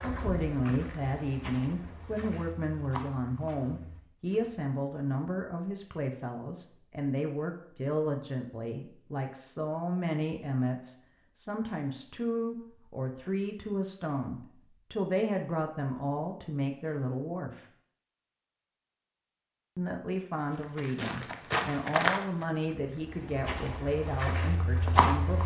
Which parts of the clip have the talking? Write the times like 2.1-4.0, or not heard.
0.0-17.6, 19.8-25.4.